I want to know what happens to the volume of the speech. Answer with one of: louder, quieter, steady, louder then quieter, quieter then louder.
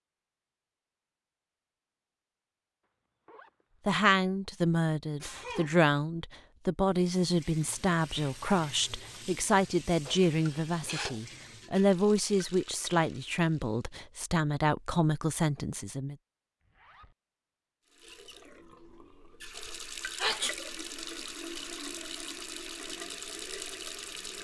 steady.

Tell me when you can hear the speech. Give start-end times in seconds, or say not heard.
3.9-16.1.